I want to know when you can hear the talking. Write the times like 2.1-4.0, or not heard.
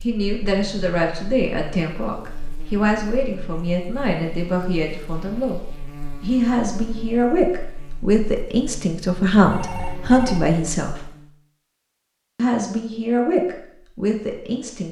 0.0-5.6, 6.2-11.1, 12.3-14.8.